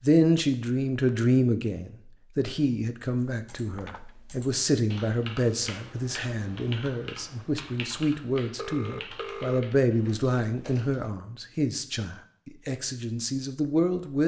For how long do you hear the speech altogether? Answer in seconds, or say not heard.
14 s.